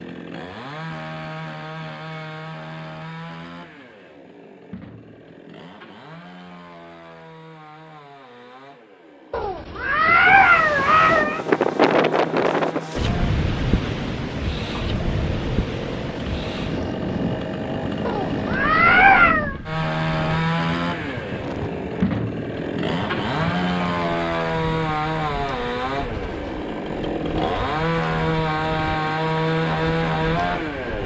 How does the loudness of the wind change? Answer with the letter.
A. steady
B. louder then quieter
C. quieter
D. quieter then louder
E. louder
C.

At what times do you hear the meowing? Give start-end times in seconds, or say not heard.
9.3-11.4, 18.1-19.6.